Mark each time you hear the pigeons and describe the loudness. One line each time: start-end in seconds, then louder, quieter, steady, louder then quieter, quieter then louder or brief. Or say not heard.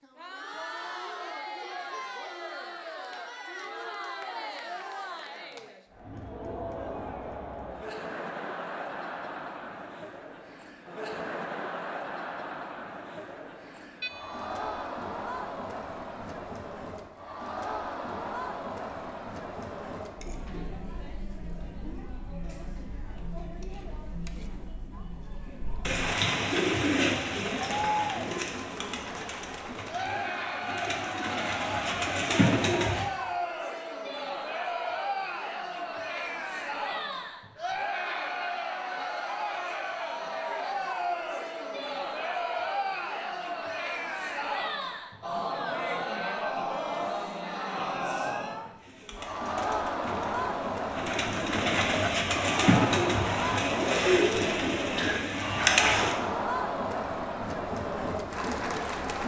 25.9-33.1 quieter then louder
48.8-56.1 louder.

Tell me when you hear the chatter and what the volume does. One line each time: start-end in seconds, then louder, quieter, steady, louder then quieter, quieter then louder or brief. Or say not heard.
0.0-59.2 louder.